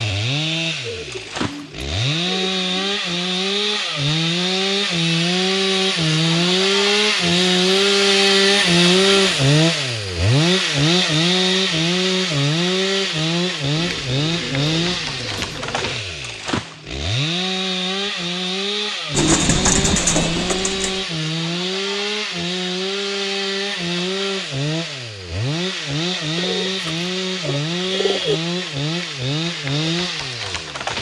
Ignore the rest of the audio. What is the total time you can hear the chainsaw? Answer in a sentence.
The chainsaw can be heard for 31 seconds in total.